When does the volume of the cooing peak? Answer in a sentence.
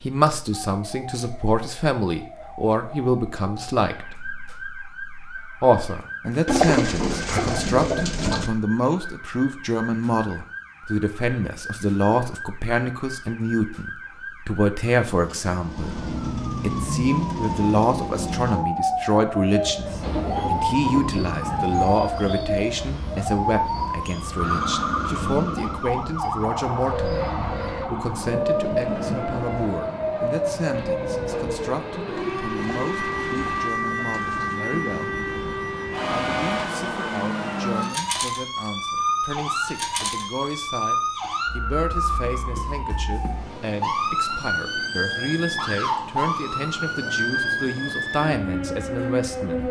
The volume of the cooing peaks at 7 seconds.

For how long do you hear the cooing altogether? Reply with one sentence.
The cooing can be heard for 4 seconds in total.